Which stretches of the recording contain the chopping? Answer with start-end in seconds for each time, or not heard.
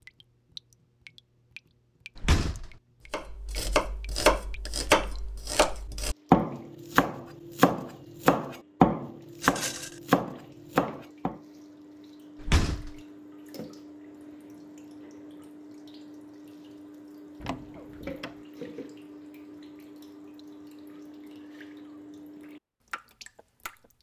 3.1-11.4.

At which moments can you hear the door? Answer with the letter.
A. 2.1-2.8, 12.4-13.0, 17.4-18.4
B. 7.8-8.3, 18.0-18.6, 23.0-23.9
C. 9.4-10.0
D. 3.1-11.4
A.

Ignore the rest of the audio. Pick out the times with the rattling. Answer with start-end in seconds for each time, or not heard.
9.4-10.0.